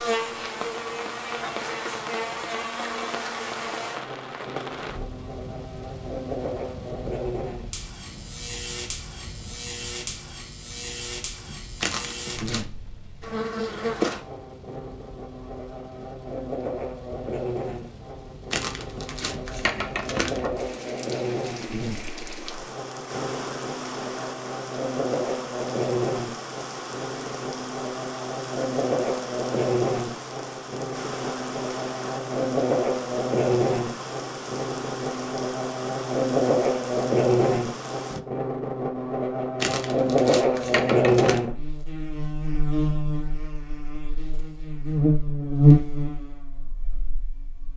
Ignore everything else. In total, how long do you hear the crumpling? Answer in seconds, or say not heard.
5 s.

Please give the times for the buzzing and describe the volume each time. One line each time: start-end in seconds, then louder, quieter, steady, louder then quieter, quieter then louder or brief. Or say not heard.
0.0-47.7 louder.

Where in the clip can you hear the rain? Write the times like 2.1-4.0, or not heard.
0.1-38.2.